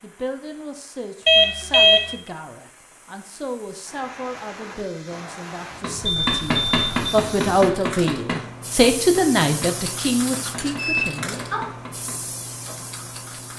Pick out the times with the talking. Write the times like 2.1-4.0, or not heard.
0.0-11.5.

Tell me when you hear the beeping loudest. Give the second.
2 s.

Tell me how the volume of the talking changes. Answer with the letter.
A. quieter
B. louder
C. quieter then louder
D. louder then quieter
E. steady
B.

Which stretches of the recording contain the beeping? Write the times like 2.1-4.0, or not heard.
1.2-2.1, 6.2-7.2, 10.8-11.7.